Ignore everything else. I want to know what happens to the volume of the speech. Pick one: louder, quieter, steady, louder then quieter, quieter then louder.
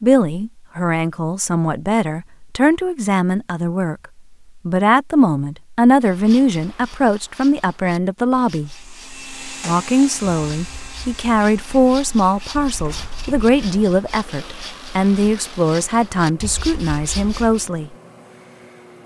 steady.